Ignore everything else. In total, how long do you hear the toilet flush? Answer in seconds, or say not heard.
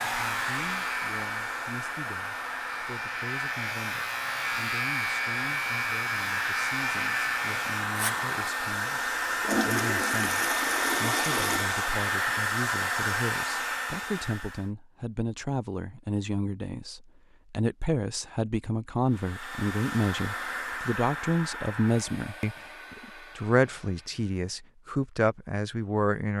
3 s.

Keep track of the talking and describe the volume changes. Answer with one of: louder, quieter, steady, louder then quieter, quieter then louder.
louder.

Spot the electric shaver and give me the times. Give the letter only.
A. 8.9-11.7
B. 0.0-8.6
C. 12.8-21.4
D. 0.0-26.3
B.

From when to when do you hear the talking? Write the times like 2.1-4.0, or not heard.
0.0-26.3.